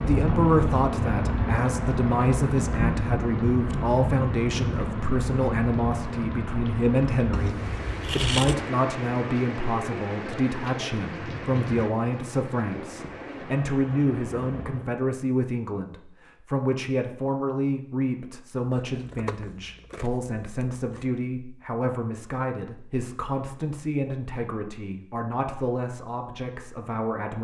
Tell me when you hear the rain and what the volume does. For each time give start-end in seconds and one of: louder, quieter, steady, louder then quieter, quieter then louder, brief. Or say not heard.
0.0-15.0 quieter.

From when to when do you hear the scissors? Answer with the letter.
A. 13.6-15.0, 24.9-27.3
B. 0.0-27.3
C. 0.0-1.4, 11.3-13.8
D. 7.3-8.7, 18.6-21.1
D.